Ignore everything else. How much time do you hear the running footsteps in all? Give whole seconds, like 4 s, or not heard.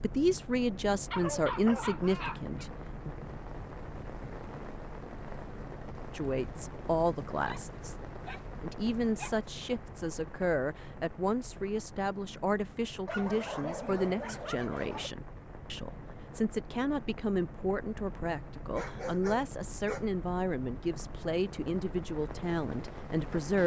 not heard.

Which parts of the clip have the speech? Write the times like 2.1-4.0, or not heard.
0.0-3.1, 6.1-8.0, 8.6-23.6.